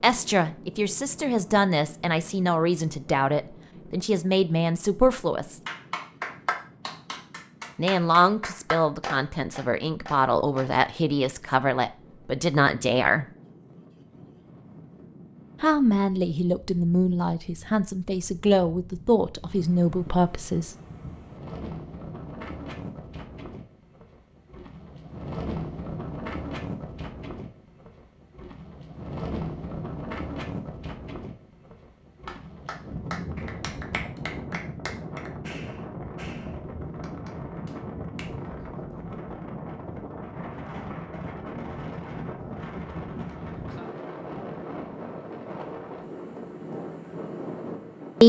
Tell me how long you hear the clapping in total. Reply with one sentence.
The clapping can be heard for 11 seconds in total.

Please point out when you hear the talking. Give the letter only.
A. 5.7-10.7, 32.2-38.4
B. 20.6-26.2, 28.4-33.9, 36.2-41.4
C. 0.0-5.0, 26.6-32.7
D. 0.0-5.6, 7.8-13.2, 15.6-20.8
D.